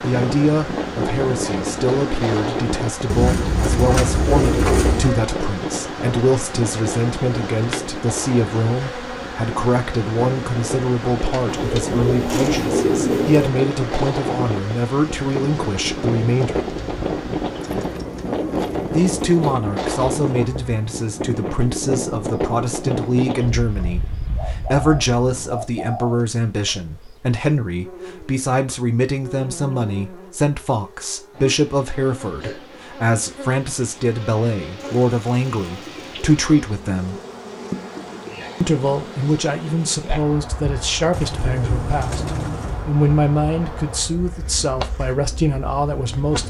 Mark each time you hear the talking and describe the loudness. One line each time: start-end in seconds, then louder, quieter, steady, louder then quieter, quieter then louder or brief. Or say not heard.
0.0-16.6 steady
18.9-37.2 steady
38.6-46.4 steady.